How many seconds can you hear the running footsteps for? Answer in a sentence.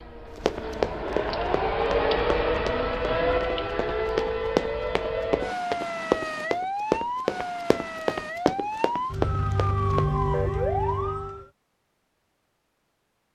The running footsteps can be heard for 10 seconds in total.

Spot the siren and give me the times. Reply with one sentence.
The siren can be heard from 0.0 to 11.4 s.